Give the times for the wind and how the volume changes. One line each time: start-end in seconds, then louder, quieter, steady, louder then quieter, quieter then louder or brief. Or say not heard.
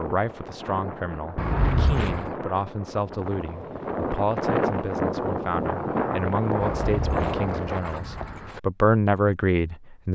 0.0-8.0 louder.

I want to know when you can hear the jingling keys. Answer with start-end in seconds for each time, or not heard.
1.4-2.4, 6.6-8.6.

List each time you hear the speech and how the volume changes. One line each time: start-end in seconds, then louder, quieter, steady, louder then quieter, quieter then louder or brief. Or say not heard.
0.0-10.1 louder.